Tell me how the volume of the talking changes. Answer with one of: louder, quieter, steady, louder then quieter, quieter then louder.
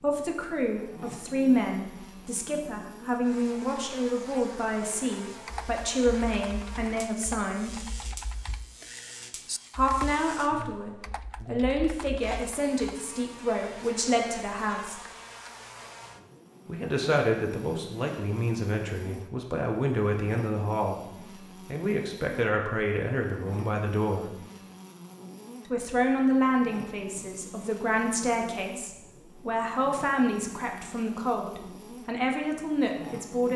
steady.